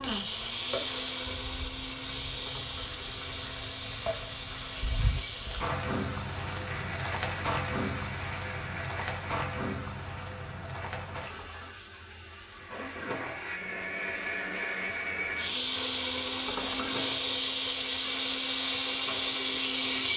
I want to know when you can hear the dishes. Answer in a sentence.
You can hear the dishes from 2.5 to 2.9 s, from 11.3 to 11.8 s and from 16.4 to 16.9 s.